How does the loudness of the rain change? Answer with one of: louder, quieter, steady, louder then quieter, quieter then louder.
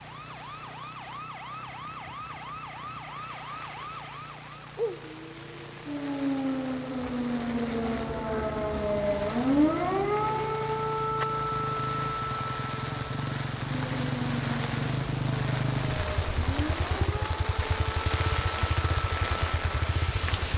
louder.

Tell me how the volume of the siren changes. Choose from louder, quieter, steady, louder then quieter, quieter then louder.
louder then quieter.